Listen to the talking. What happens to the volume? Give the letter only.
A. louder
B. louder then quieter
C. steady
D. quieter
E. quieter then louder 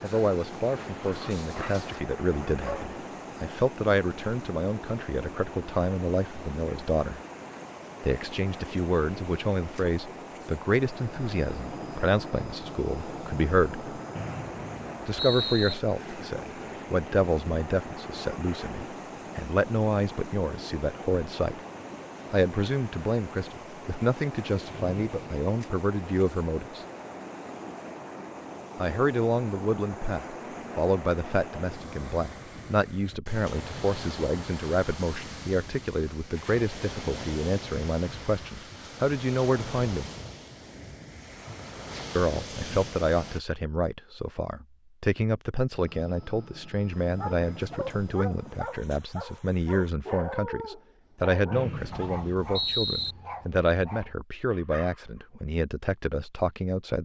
C.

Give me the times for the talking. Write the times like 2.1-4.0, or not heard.
0.0-7.2, 8.0-13.8, 15.1-21.6, 22.3-26.9, 28.8-40.1, 42.1-57.0.